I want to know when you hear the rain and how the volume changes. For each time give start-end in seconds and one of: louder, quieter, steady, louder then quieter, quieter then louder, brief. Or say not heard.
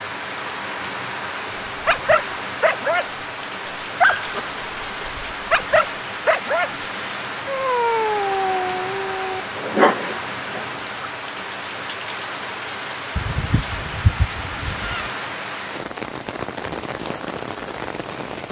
0.0-18.4 steady.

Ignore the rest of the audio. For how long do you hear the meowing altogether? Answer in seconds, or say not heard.
2 s.